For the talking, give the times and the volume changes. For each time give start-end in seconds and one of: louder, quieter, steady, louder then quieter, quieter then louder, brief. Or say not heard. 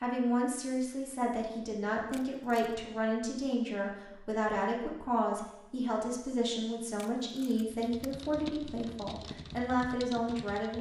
0.0-10.7 steady.